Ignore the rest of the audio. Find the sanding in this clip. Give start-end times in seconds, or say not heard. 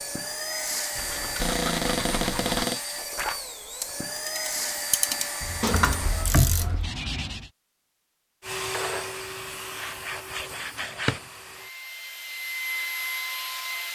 0.9-2.6, 5.4-7.5, 9.8-11.2.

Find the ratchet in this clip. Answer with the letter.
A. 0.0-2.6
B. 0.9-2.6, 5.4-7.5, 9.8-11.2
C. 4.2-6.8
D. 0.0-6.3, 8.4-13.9
C.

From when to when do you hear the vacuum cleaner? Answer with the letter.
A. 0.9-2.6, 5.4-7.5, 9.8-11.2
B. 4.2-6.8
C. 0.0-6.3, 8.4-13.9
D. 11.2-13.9
C.